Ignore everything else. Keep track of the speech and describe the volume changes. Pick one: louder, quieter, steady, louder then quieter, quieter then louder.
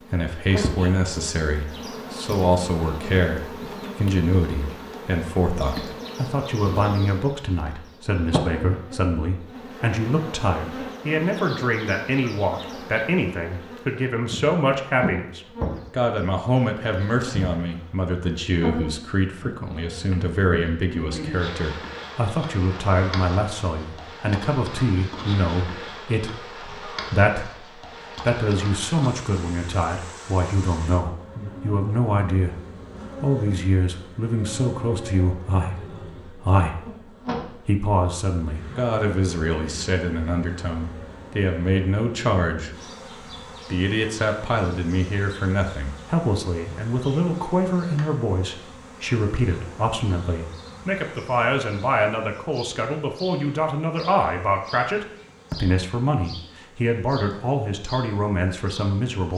steady.